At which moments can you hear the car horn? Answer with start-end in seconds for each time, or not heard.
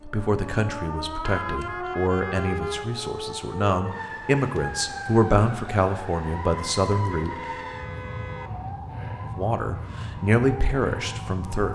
1.2-2.9, 7.0-8.8.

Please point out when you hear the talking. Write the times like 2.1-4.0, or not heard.
0.0-7.3, 9.2-11.7.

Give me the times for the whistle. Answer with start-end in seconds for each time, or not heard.
not heard.